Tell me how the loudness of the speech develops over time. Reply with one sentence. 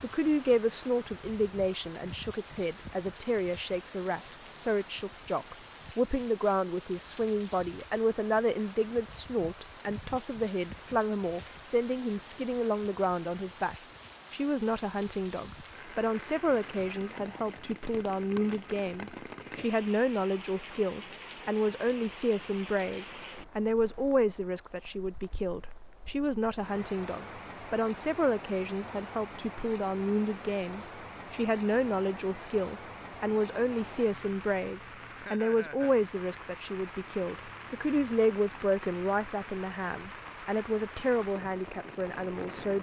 The loudness of the speech stays about the same.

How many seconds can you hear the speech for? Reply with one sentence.
The speech can be heard for 43 seconds in total.